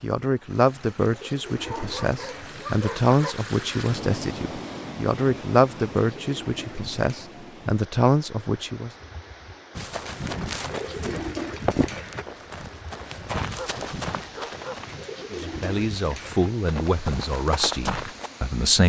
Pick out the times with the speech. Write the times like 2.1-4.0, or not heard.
0.0-8.9, 15.3-18.8.